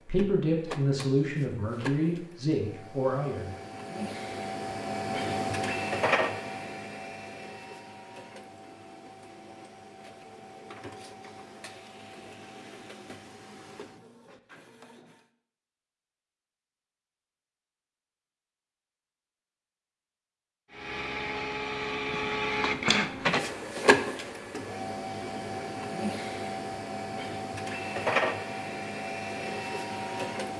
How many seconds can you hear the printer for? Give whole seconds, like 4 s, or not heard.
25 s.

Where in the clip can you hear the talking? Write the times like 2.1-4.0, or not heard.
0.1-3.5.